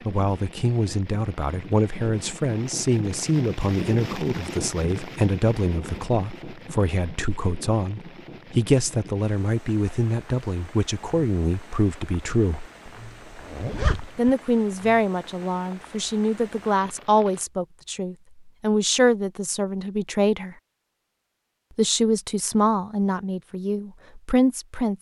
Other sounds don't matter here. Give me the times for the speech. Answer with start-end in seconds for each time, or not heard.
0.1-12.7, 14.2-20.6, 21.8-24.9.